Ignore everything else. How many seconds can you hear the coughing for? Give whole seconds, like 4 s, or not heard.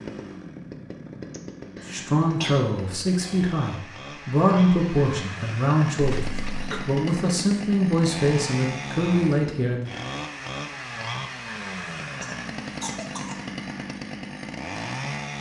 3 s.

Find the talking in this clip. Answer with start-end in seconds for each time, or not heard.
1.9-9.9.